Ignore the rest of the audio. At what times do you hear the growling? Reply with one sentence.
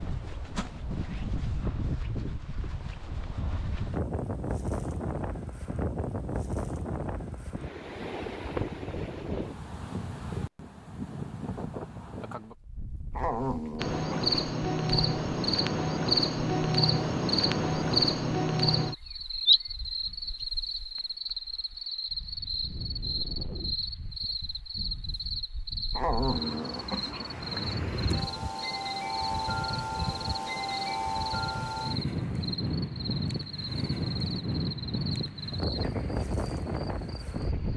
You can hear the growling from 13.2 to 14.3 s and from 25.9 to 27.8 s.